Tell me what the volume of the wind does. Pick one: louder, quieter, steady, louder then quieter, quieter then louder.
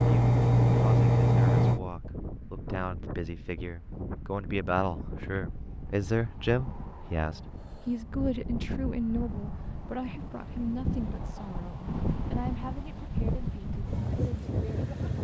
louder.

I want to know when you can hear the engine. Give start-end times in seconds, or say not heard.
0.0-1.8.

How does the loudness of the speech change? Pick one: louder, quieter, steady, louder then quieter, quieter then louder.
louder then quieter.